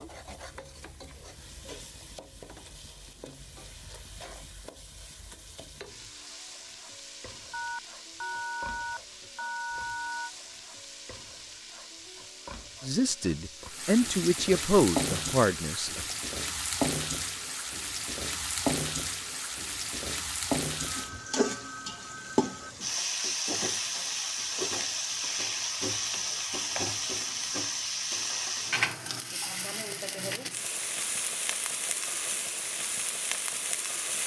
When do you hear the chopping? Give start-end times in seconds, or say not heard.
not heard.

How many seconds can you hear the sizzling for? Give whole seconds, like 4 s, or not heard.
34 s.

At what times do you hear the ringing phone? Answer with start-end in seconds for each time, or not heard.
7.5-10.3, 20.9-22.8.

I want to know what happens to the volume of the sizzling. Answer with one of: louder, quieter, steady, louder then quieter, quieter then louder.
louder.